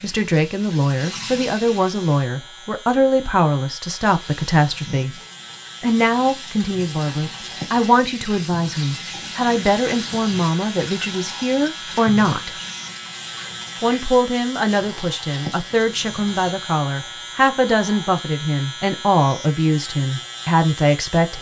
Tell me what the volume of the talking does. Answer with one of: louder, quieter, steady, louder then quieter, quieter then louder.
steady.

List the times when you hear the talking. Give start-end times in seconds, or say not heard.
0.0-5.2, 5.8-12.6, 13.8-21.3.